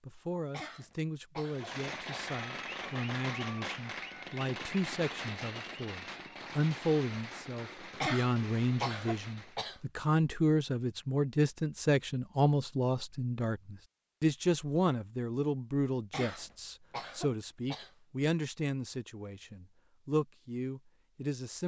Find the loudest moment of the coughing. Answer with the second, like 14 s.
8 s.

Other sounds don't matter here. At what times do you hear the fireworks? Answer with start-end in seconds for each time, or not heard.
1.5-9.6.